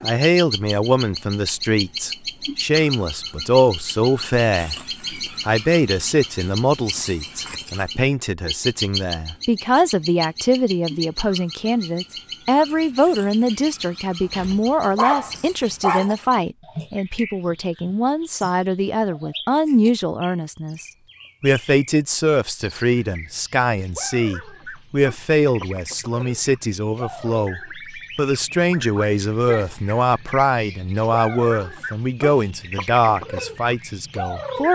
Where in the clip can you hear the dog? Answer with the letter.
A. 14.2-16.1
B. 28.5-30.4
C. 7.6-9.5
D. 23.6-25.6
A.